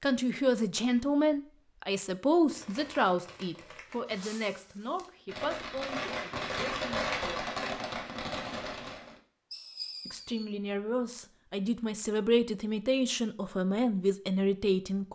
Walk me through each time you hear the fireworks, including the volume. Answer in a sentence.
The fireworks can be heard from 2.5 to 10.5 s, getting louder then quieter.